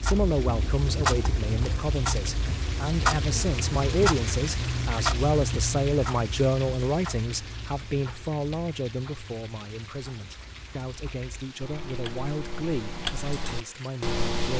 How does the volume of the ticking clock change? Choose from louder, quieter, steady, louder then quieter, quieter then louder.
quieter then louder.